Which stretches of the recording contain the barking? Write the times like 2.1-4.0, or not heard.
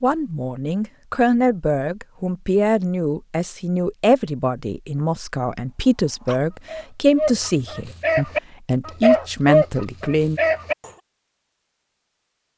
6.0-10.9.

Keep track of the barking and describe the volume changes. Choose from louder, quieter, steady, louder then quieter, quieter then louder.
louder then quieter.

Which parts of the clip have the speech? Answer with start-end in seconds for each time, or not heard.
0.0-10.4.